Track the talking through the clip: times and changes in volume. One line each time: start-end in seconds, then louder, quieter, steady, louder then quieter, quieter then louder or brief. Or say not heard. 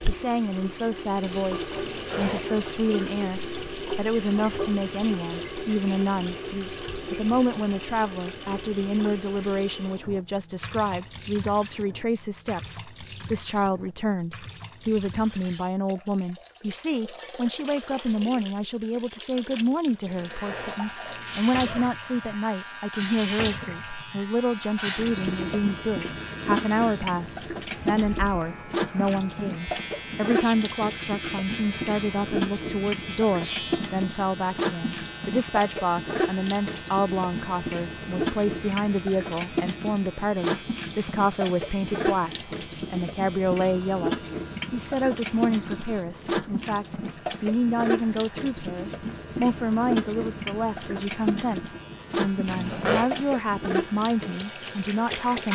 0.1-55.5 steady.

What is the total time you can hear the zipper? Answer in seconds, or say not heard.
3 s.